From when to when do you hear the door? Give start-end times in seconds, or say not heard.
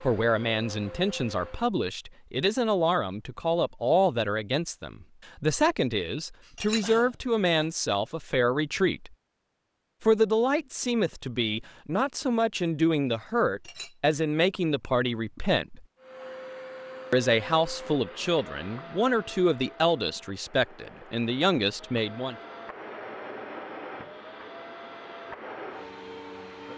not heard.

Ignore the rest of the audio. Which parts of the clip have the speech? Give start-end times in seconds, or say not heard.
0.0-9.1, 10.0-15.8, 17.1-22.4.